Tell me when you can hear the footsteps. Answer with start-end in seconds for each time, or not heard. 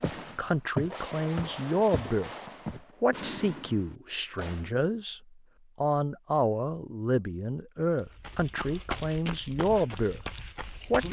0.0-2.8, 8.0-11.0.